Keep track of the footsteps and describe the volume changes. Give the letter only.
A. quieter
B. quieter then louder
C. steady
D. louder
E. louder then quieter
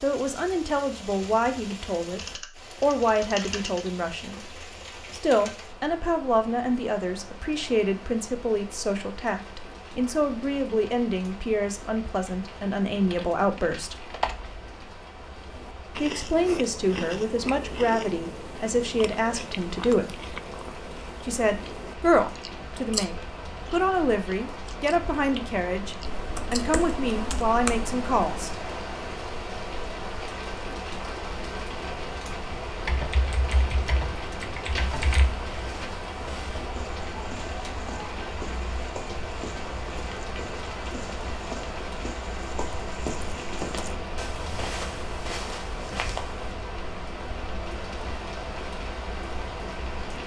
D.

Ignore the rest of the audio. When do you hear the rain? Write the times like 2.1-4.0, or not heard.
0.0-50.2.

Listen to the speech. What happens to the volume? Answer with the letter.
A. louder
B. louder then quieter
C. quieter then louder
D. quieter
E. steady
E.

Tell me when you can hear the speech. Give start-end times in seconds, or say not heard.
0.0-13.9, 15.9-20.2, 21.2-28.6.